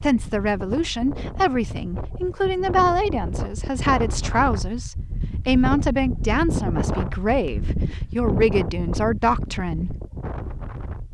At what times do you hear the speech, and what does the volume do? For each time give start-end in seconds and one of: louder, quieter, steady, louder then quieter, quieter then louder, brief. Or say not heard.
0.0-9.9 steady.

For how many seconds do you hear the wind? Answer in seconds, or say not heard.
11 s.